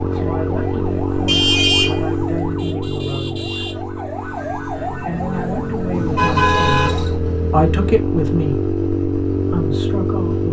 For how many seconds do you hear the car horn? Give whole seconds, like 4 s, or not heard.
2 s.